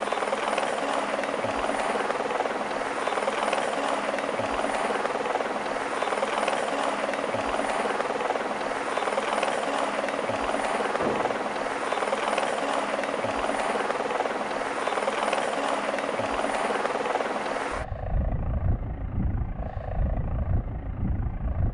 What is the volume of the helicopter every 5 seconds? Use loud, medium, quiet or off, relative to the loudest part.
loud, loud, loud, loud, medium.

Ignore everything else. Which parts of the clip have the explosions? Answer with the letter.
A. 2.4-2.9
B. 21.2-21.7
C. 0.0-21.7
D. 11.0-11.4
D.